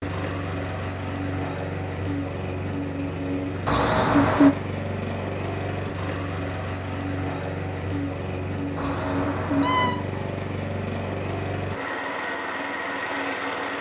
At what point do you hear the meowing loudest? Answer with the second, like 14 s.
4 s.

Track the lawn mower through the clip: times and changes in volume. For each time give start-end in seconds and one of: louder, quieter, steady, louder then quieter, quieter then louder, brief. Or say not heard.
0.0-13.7 steady.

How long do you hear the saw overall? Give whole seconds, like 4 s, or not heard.
not heard.